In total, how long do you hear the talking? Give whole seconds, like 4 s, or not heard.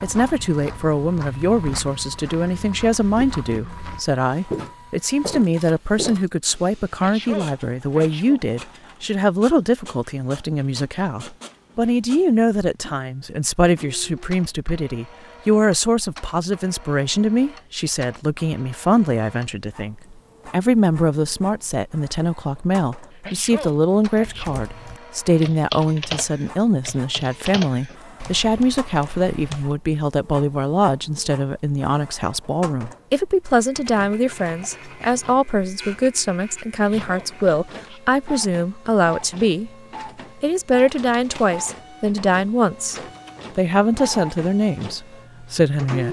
45 s.